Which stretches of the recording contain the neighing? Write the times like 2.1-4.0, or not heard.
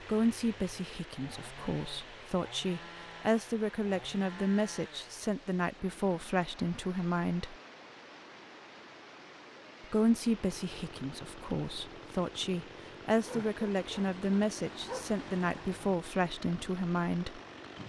not heard.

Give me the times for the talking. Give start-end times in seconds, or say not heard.
0.1-7.5, 9.8-17.4.